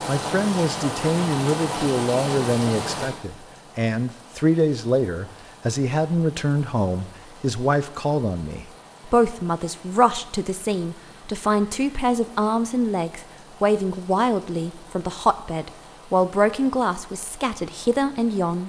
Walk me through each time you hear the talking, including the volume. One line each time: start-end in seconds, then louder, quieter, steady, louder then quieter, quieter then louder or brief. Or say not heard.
0.1-18.6 steady.